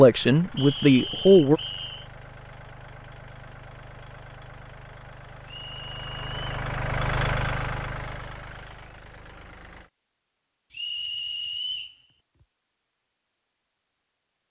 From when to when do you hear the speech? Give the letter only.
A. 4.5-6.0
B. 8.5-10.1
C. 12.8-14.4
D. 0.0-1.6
D.